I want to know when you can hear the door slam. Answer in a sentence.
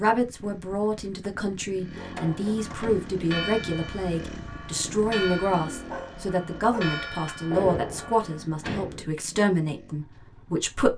The door slam can be heard from 2.1 to 3.1 s and from 7.5 to 9.1 s.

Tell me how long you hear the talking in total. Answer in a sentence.
You can hear the talking for 11 seconds altogether.